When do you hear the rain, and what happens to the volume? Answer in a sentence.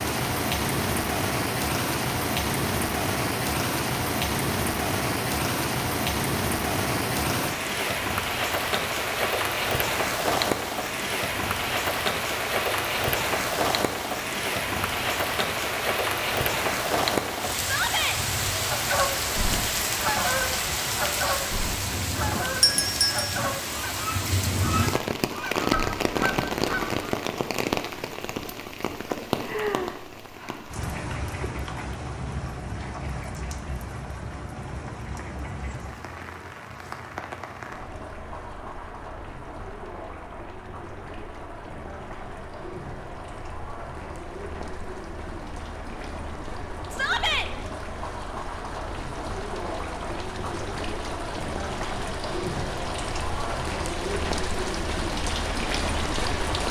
You can hear the rain from 0.0 to 56.6 s, getting quieter then louder.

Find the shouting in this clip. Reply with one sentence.
The shouting can be heard from 17.6 to 18.2 s and from 46.9 to 47.5 s.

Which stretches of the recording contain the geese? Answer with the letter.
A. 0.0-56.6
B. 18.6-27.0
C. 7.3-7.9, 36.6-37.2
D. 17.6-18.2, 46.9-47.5
B.